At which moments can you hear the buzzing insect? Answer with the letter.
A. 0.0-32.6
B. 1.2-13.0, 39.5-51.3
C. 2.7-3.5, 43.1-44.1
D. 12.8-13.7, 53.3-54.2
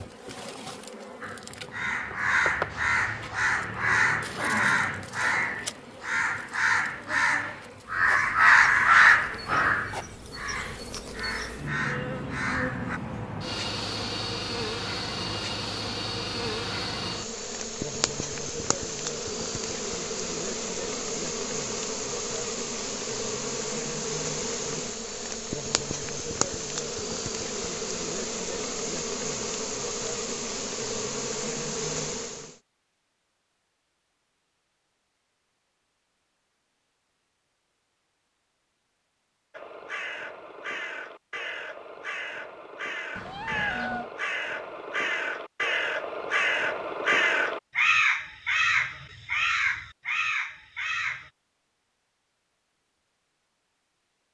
A.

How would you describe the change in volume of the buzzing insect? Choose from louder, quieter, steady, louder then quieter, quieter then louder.
louder.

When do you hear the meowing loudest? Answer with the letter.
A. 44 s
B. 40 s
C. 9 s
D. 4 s
A.